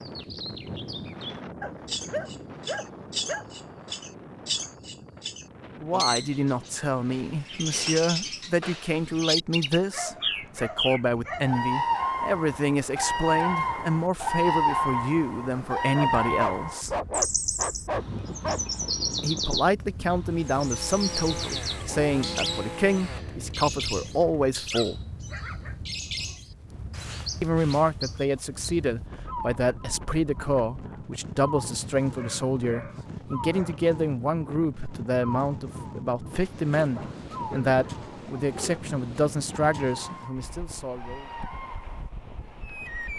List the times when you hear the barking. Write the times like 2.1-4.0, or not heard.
1.6-3.9, 9.9-11.6, 15.9-18.6, 24.2-25.8, 32.0-33.8, 36.8-38.8.